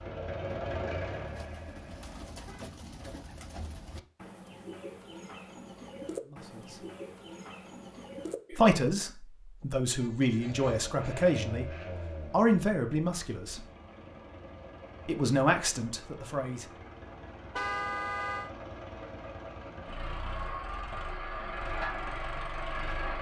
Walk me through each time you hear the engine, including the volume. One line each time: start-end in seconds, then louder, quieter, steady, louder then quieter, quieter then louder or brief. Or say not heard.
0.0-2.2 brief
10.3-23.1 quieter then louder.